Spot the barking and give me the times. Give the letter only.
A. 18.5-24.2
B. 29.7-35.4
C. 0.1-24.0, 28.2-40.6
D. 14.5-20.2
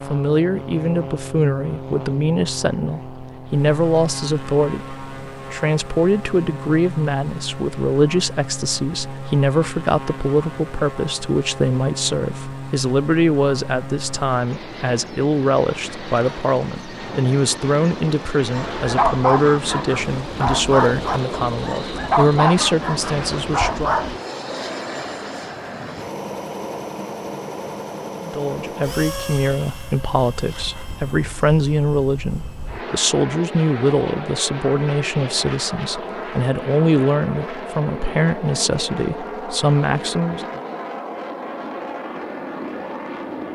A.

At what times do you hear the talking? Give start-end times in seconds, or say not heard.
0.1-24.0, 28.2-40.6.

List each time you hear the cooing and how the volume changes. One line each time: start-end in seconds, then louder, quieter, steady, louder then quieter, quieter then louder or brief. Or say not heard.
not heard.